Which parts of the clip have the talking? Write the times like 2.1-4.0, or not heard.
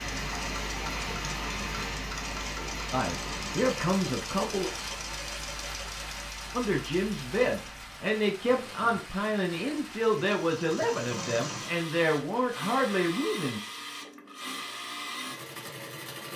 2.9-4.7, 6.5-13.6.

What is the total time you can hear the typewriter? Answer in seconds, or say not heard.
not heard.